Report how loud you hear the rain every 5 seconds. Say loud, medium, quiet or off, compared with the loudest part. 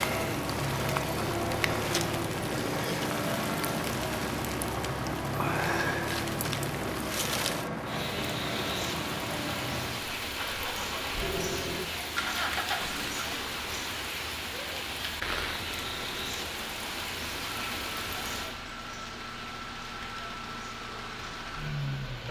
loud, loud, loud, loud, medium.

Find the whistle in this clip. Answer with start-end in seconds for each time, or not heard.
not heard.